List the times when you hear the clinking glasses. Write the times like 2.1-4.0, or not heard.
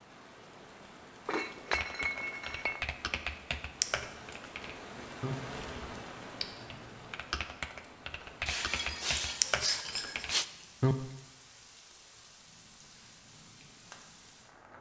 1.2-2.8, 8.4-10.4.